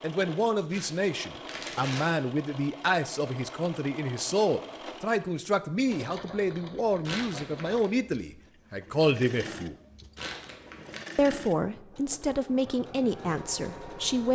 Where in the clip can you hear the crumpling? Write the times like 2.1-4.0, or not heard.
0.7-2.1, 7.0-7.9, 10.2-11.0.